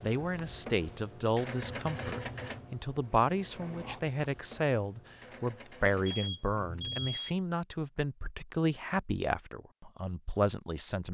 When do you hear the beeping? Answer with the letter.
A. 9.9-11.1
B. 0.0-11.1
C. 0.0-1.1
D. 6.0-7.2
D.